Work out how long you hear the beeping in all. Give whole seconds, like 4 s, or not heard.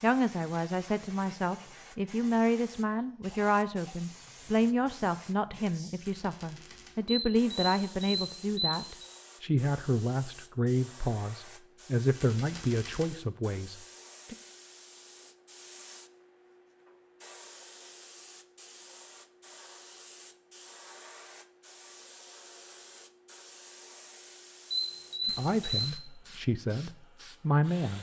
3 s.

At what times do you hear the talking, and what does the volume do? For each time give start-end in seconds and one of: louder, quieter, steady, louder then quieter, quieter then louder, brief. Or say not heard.
0.0-14.3 steady
25.2-27.9 brief.